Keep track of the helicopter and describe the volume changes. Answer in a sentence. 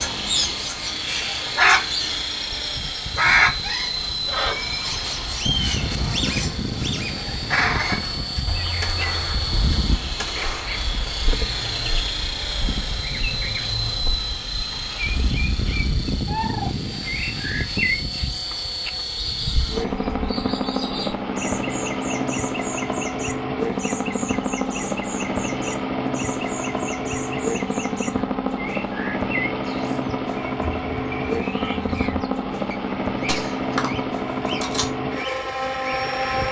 The volume of the helicopter stays about the same.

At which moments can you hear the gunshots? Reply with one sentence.
The gunshots can be heard from 7.8 to 10.9 s and from 33.1 to 34.9 s.